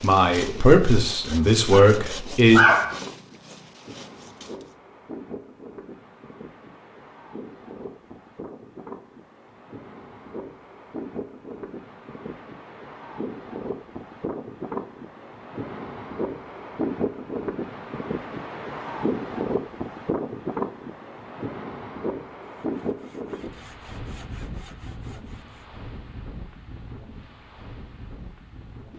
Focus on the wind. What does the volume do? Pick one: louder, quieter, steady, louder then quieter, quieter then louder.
louder then quieter.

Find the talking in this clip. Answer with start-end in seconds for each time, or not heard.
0.0-2.6.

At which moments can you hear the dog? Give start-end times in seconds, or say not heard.
1.7-3.0.